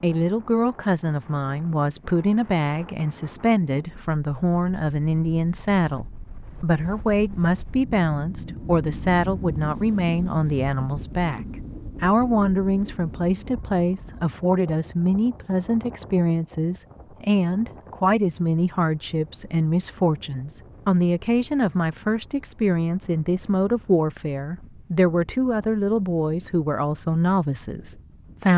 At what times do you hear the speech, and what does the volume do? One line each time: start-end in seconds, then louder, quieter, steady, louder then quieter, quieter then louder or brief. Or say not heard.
0.0-28.5 steady.